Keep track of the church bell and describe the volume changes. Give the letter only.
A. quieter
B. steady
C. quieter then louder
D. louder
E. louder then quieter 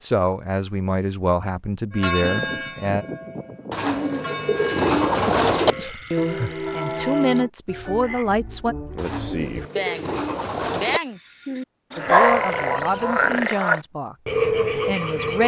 C.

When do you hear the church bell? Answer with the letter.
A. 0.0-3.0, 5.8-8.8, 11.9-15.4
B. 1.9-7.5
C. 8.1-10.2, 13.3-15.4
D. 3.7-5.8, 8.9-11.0
B.